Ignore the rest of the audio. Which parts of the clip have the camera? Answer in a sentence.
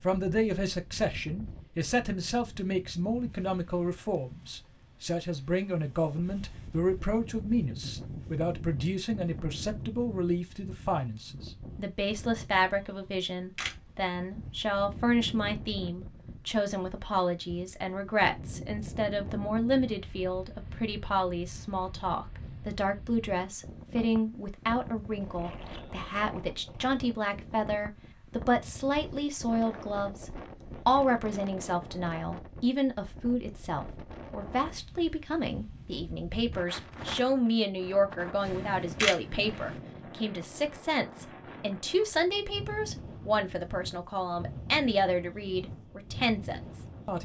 The camera can be heard from 13.1 to 13.8 s and from 38.5 to 39.2 s.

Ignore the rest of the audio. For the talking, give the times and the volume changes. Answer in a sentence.
You can hear the talking from 0.0 to 47.1 s, at a steady volume.